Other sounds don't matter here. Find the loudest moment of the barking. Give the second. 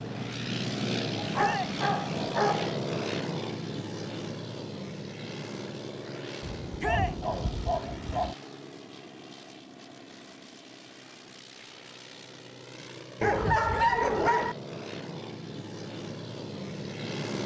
14 s.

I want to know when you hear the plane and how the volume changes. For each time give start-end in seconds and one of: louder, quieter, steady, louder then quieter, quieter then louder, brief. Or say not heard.
0.0-17.4 quieter then louder.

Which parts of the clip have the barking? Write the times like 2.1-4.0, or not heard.
1.1-2.8, 6.4-8.3, 13.2-14.6.